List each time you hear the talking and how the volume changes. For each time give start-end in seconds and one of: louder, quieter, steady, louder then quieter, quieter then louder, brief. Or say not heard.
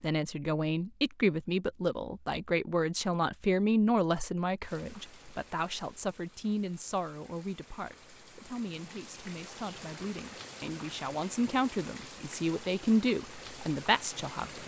0.0-14.6 quieter then louder.